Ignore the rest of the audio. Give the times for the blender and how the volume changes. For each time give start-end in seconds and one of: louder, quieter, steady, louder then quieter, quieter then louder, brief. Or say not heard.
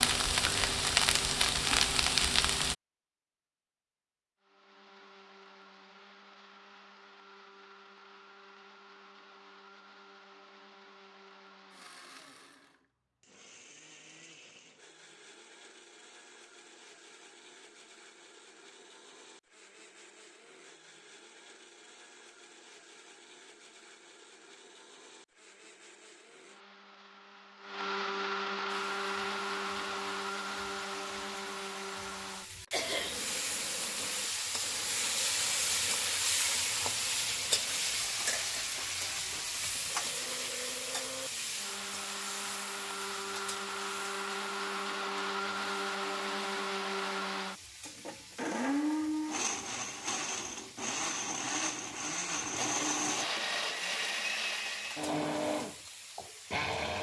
4.4-56.9 louder.